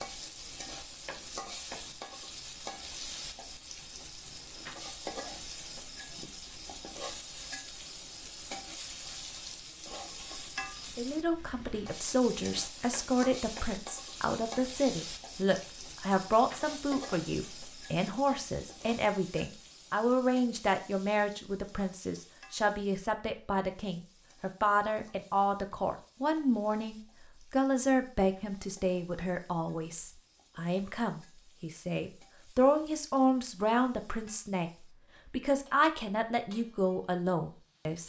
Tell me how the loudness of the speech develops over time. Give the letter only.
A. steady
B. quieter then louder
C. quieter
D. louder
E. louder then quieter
A.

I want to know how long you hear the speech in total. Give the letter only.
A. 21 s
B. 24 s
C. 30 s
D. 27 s
D.